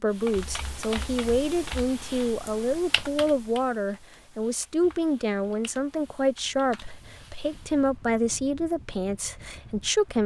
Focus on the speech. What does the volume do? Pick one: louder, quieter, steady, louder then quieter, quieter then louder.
steady.